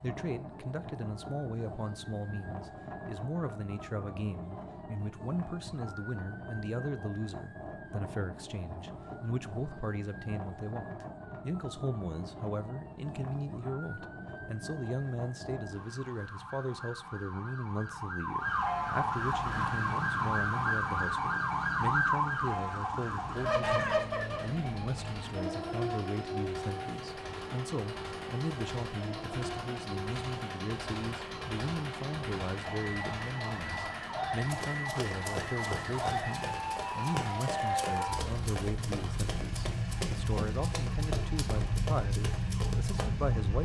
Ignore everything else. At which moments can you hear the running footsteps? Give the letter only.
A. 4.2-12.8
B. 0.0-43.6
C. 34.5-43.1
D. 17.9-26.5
C.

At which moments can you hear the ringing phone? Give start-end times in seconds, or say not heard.
not heard.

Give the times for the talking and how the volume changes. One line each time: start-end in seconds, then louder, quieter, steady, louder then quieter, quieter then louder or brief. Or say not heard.
0.0-43.6 steady.